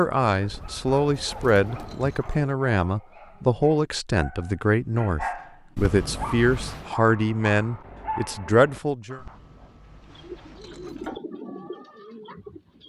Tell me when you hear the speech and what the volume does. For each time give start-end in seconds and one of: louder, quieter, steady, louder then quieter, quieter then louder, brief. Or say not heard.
0.0-9.2 steady.